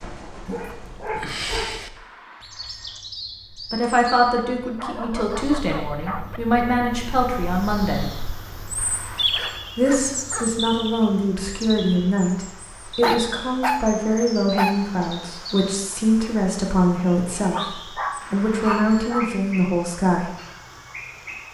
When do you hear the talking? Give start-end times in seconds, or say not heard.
3.7-8.1, 9.8-20.3.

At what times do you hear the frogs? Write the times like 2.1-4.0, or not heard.
not heard.